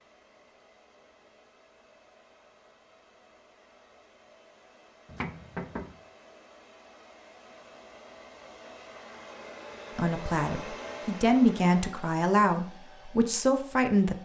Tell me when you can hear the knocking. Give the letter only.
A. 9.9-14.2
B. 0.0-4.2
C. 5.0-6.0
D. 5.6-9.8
C.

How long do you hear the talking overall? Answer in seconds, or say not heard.
4 s.